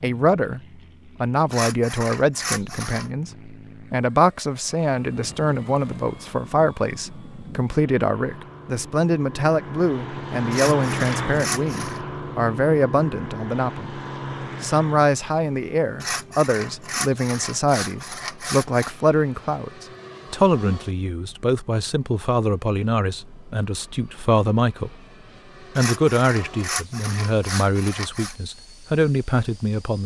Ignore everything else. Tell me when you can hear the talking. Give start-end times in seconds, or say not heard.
0.0-0.6, 1.2-14.0, 14.6-24.9, 25.8-30.0.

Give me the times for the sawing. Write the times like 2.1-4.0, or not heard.
1.5-3.1, 10.5-12.0, 16.0-18.9, 25.8-28.4.